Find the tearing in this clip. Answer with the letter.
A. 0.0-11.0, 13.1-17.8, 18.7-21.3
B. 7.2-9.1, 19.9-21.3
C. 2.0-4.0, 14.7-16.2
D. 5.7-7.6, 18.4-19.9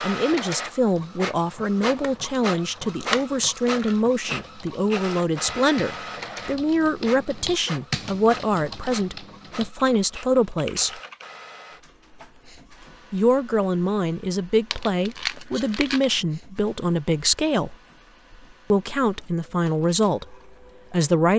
C.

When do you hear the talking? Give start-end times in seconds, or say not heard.
0.0-11.0, 13.1-17.8, 18.7-21.3.